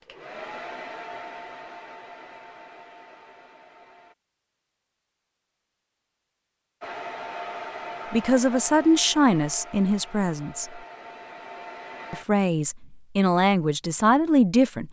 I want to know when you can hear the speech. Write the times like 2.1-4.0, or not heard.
8.1-10.8, 12.1-14.8.